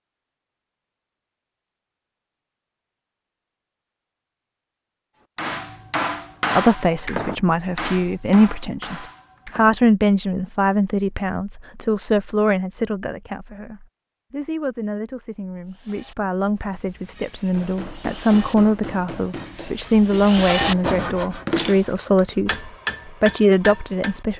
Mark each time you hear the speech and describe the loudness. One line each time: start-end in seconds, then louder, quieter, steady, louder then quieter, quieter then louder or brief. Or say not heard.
6.5-24.3 quieter then louder.